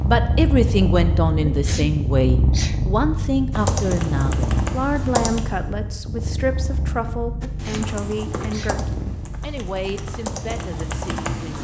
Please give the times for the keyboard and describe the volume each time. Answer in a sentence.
You can hear the keyboard briefly from 3.5 to 5.4 s; and from 7.4 to 11.6 s, getting quieter then louder.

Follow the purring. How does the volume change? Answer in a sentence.
The loudness of the purring goes down.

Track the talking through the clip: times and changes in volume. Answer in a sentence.
The talking can be heard from 0.0 to 11.6 s, getting quieter.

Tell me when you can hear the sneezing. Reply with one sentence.
The sneezing can be heard from 1.4 to 3.0 s and from 7.4 to 8.8 s.